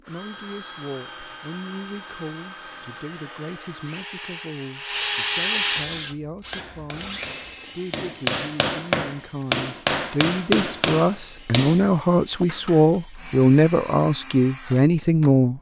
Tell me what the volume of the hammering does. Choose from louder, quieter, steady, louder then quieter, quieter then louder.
louder then quieter.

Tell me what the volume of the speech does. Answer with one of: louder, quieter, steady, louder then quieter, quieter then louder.
louder.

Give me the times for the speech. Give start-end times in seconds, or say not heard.
0.0-15.5.